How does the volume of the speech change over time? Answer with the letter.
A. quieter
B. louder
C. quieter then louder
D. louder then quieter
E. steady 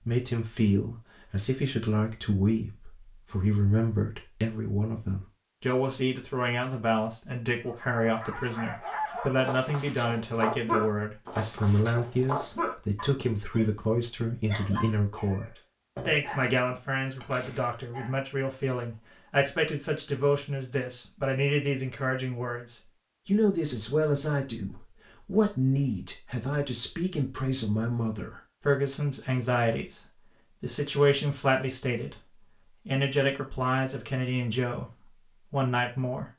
E.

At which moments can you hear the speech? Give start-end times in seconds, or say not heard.
0.1-36.3.